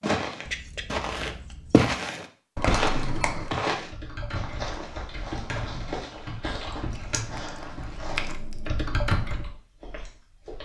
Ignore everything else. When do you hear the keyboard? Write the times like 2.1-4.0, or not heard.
3.7-9.6.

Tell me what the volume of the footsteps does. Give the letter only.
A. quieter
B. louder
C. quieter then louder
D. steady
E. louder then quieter
A.